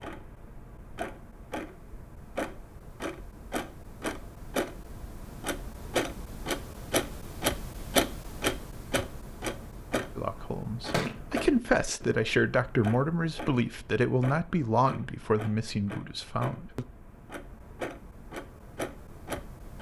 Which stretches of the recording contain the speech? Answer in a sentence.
The speech can be heard from 10.2 to 16.9 s.